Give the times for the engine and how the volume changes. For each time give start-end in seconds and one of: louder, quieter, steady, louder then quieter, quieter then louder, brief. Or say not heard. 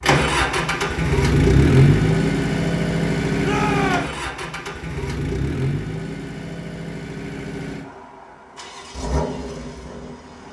0.0-10.4 quieter.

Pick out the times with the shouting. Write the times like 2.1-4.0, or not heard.
3.4-4.2.